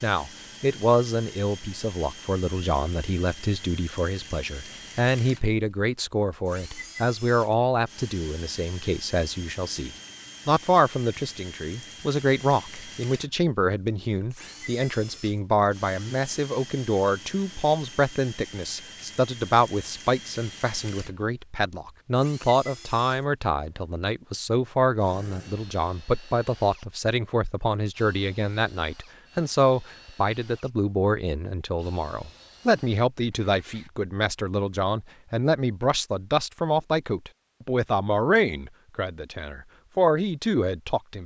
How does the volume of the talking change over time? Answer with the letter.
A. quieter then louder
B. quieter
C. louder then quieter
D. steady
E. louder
D.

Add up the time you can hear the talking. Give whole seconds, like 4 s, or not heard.
41 s.